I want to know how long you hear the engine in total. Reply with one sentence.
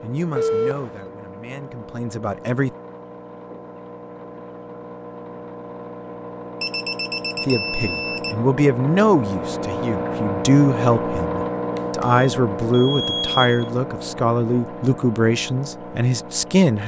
You can hear the engine for 17 seconds altogether.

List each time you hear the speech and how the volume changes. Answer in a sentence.
You can hear the speech briefly from 0.0 to 2.7 s; and from 7.5 to 16.8 s, at a steady volume.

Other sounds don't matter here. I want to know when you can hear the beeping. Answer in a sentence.
You can hear the beeping from 0.3 to 1.1 s, from 6.6 to 8.3 s and from 11.8 to 13.7 s.